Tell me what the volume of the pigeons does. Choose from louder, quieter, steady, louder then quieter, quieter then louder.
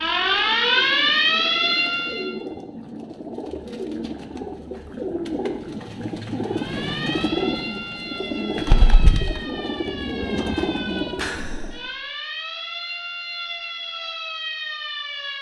louder.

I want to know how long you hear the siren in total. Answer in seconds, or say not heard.
11 s.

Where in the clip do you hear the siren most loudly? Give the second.
1 s.